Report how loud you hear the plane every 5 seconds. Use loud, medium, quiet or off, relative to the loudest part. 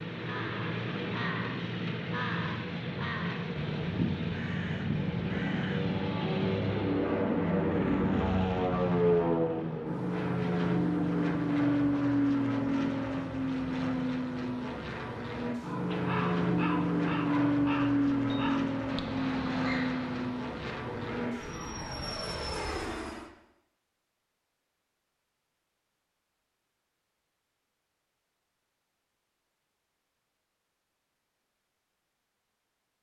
medium, loud, loud, loud, medium, off, off.